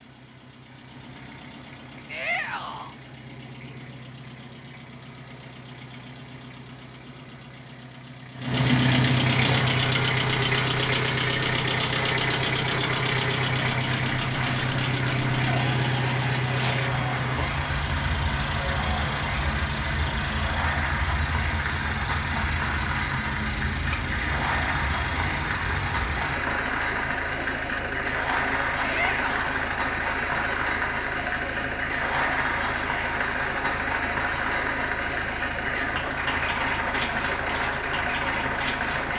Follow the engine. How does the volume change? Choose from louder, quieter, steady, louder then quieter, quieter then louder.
louder then quieter.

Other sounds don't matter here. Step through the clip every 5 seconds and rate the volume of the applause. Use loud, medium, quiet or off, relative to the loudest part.
off, off, medium, loud, loud, loud, loud, loud.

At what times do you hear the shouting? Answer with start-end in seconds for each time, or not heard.
2.0-3.0, 28.8-29.4.